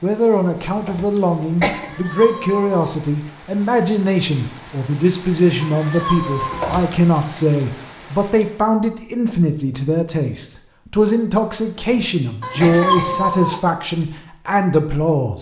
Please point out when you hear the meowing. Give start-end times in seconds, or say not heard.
1.7-2.9, 5.6-6.6, 12.4-13.6.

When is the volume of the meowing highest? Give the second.
13 s.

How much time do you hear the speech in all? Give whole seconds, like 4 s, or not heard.
15 s.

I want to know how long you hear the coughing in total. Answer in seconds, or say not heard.
4 s.